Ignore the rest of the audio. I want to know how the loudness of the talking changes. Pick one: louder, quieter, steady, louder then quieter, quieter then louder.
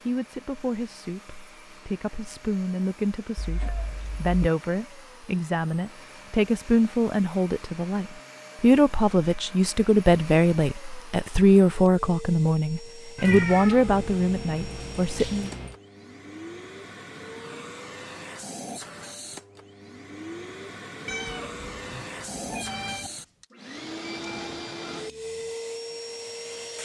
louder.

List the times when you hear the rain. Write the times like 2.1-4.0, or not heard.
not heard.